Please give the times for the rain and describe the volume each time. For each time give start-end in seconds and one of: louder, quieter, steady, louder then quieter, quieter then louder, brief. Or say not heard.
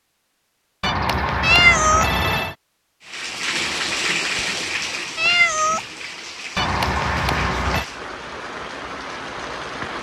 3.0-9.9 quieter.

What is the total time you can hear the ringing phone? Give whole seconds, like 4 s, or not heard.
3 s.